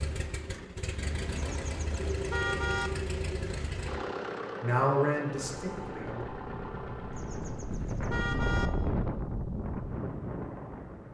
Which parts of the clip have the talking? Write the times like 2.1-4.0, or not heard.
4.6-6.2.